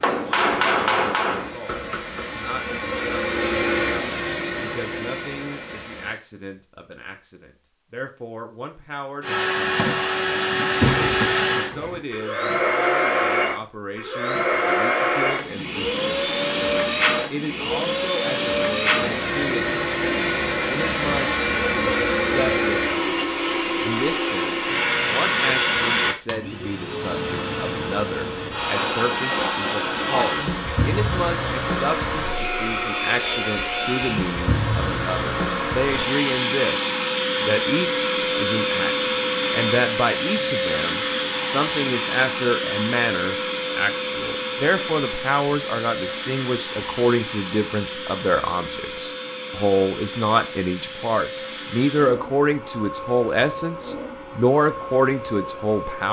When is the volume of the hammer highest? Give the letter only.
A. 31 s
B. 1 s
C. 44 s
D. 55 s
B.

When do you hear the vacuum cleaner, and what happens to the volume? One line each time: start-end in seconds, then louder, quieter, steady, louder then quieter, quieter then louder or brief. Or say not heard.
0.1-6.2 louder then quieter
9.2-56.0 quieter.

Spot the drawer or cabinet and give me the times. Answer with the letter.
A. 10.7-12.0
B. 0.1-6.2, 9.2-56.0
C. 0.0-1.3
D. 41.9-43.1
A.